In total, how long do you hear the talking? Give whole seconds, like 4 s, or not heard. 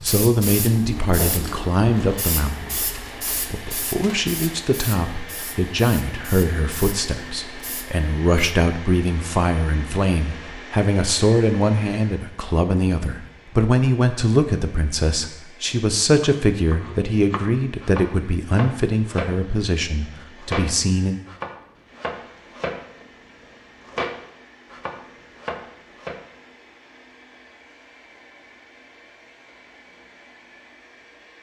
21 s.